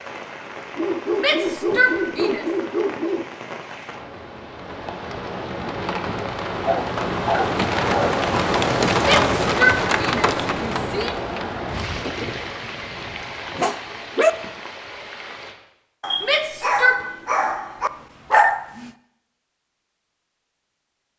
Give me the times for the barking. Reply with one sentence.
The barking can be heard from 0.8 to 3.2 s, from 6.6 to 8.2 s, from 13.6 to 14.3 s and from 16.0 to 18.6 s.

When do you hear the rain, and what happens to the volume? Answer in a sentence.
The rain can be heard from 0.0 to 15.6 s, getting louder then quieter.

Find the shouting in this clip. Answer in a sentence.
You can hear the shouting from 1.1 to 2.5 s, from 9.0 to 11.2 s and from 16.2 to 17.0 s.